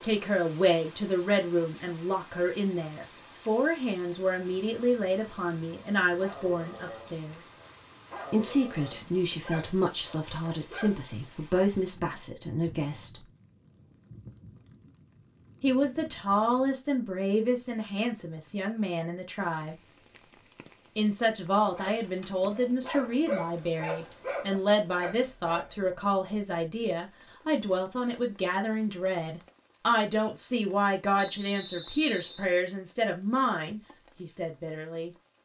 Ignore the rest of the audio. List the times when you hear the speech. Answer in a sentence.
The speech can be heard from 0.0 to 7.5 s, from 8.3 to 13.2 s, from 15.6 to 19.8 s and from 20.9 to 35.1 s.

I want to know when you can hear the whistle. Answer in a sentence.
The whistle can be heard from 31.1 to 32.5 s.